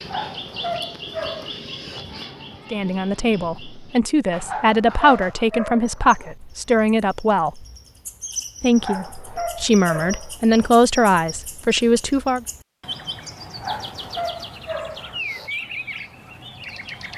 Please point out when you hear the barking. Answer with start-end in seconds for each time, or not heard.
0.0-1.5, 4.4-6.3, 8.8-10.7, 13.6-15.5.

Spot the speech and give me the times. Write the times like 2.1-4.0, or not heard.
2.7-7.7, 8.6-12.4.